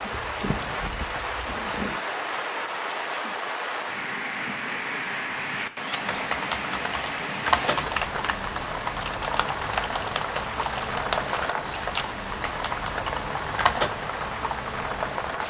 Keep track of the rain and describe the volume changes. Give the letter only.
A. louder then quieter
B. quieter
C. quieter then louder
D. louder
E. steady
E.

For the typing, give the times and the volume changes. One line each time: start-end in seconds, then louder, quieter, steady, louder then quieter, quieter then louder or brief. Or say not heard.
5.9-13.9 quieter.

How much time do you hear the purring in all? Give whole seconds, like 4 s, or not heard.
2 s.